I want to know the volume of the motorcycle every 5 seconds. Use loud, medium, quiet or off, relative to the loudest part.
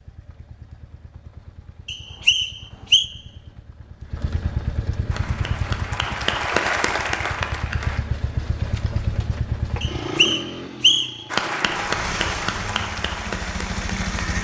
medium, loud, loud.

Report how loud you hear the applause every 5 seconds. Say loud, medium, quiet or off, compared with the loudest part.
off, loud, loud.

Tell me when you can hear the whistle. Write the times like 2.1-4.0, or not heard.
1.9-3.1, 9.8-11.2.